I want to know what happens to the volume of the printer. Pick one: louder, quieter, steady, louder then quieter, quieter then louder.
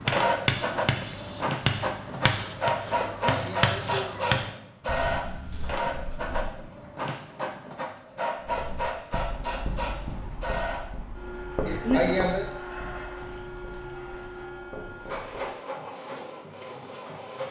quieter.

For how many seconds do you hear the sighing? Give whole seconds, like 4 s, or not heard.
2 s.